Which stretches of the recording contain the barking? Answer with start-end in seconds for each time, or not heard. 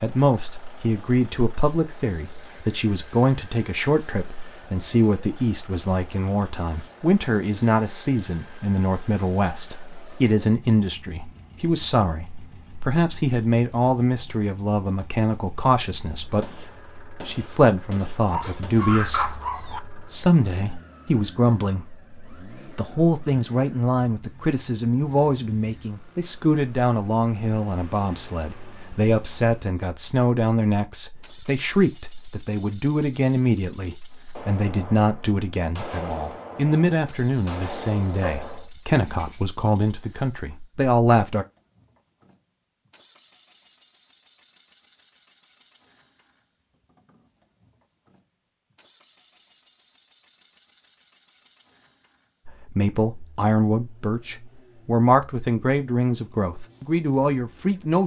18.2-19.8, 38.1-39.4.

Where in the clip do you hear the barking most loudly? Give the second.
19 s.